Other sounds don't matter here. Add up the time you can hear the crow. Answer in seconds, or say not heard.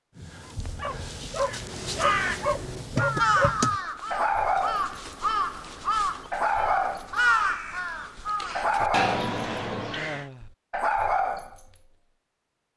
9 s.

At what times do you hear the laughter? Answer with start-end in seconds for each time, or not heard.
9.9-10.5.